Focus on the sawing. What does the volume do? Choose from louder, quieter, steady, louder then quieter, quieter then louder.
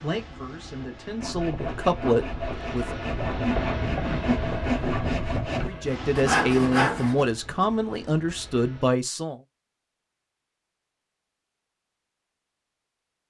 louder.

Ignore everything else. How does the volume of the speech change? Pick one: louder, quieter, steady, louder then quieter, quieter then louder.
louder.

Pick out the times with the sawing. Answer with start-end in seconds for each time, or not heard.
1.2-7.2.